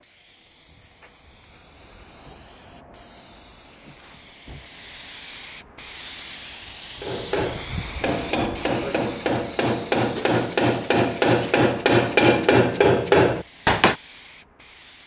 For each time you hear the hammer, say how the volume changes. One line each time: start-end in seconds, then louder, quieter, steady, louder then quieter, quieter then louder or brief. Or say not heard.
7.0-13.9 louder.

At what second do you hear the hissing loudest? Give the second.
8 s.